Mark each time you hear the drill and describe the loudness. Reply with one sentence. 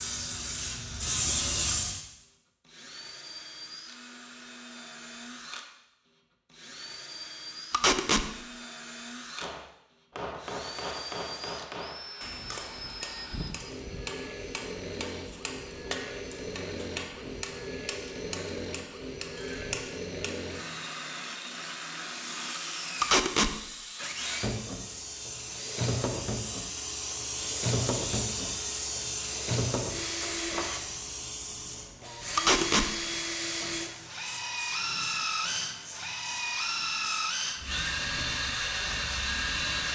You can hear the drill from 0.0 to 39.9 s, getting louder.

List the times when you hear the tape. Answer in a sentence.
You can hear the tape from 7.7 to 8.2 s, from 23.0 to 23.5 s and from 32.4 to 32.9 s.